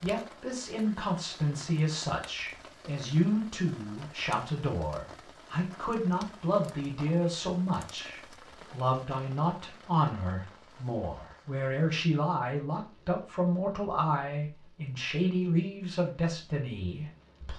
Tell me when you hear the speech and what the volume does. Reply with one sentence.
You can hear the speech from 0.0 to 17.5 s, at a steady volume.